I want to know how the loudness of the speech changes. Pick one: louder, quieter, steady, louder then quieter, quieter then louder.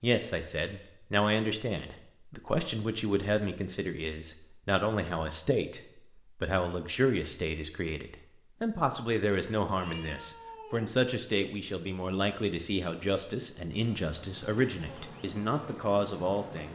steady.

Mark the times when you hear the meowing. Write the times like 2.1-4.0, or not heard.
9.8-10.9.